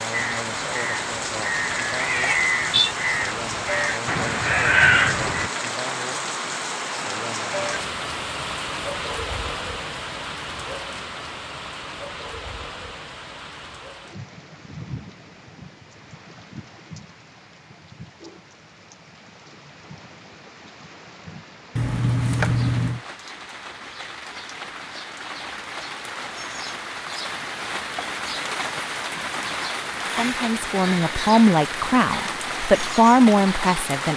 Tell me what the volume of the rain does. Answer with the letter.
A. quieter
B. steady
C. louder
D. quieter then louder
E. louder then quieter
D.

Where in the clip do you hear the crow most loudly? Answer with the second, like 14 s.
5 s.